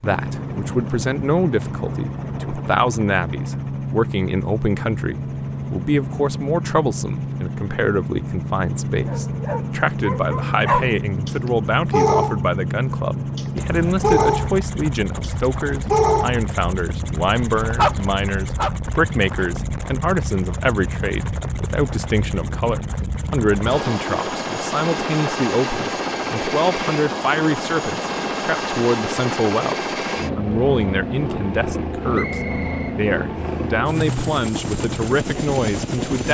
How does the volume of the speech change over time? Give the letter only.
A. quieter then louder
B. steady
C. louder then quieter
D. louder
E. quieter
B.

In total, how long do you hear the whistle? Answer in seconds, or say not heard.
2 s.